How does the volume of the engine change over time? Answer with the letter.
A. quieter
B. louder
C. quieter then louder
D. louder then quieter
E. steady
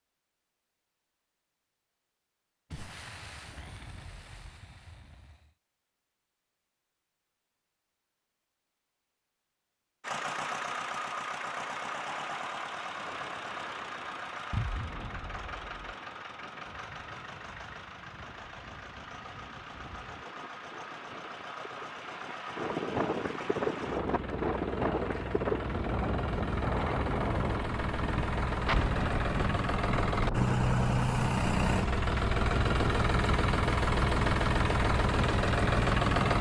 C.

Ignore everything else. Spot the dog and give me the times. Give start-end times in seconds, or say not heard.
not heard.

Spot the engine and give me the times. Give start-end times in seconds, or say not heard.
10.0-36.3.